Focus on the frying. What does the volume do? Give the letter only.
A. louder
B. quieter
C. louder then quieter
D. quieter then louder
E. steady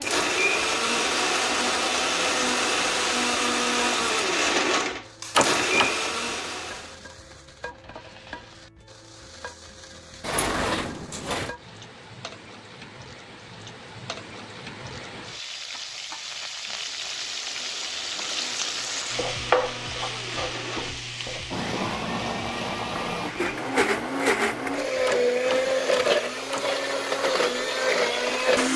C.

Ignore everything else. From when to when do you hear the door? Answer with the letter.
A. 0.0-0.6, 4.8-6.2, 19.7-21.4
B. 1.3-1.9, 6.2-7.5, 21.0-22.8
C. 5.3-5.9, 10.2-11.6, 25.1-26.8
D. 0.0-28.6
C.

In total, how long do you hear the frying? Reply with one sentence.
You can hear the frying for 29 seconds altogether.